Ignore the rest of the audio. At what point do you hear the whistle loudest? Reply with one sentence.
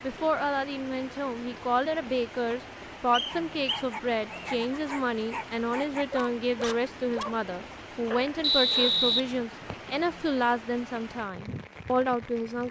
The volume of the whistle peaks at 9 seconds.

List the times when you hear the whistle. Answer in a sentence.
The whistle can be heard from 3.1 to 4.5 s and from 8.4 to 9.9 s.